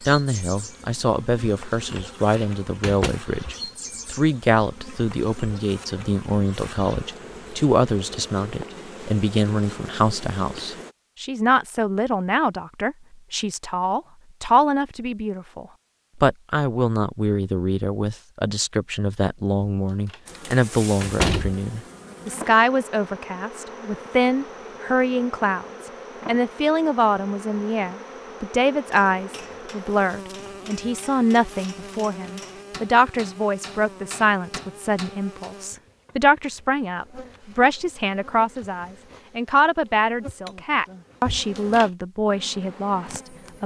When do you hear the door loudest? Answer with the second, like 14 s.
21 s.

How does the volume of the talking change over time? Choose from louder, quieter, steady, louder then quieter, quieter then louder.
steady.